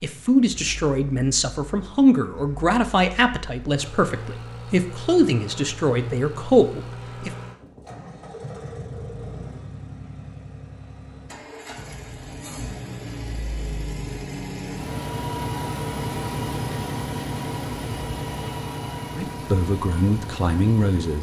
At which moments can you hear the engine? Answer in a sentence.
You can hear the engine from 0.0 to 21.1 s.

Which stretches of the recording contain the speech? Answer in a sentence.
The speech can be heard from 0.0 to 7.3 s and from 19.1 to 21.1 s.